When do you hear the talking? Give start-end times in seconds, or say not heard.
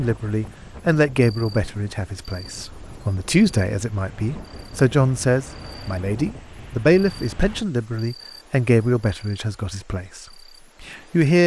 0.0-11.4.